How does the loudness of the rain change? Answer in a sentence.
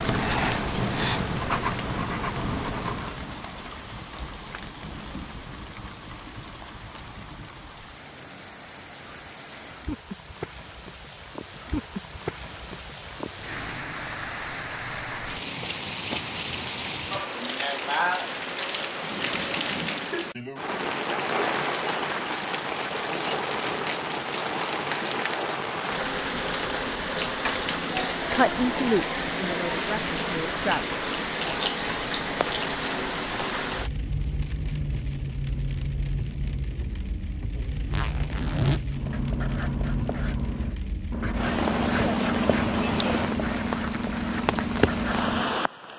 The volume of the rain goes up.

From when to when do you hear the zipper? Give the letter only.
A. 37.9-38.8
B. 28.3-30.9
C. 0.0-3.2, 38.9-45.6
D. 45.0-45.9
A.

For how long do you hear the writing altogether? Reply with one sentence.
You can hear the writing for 10 seconds altogether.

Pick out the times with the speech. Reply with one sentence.
You can hear the speech from 28.3 to 30.9 s.